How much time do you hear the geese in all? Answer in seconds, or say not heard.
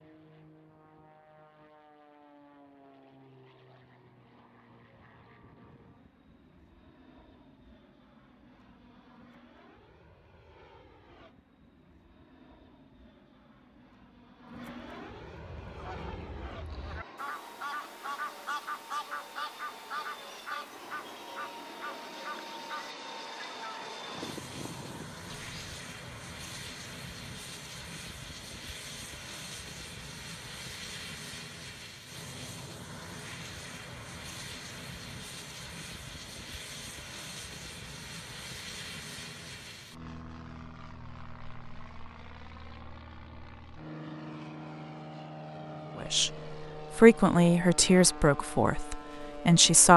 10 s.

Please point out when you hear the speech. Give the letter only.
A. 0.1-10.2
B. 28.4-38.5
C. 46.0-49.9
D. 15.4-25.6
C.